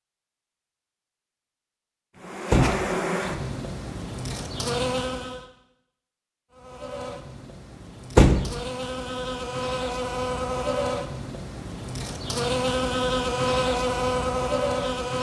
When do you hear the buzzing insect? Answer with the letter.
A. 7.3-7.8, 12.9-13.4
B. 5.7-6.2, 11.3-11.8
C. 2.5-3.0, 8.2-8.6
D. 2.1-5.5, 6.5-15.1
D.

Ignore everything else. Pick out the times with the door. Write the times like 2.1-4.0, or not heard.
2.5-3.0, 8.2-8.6.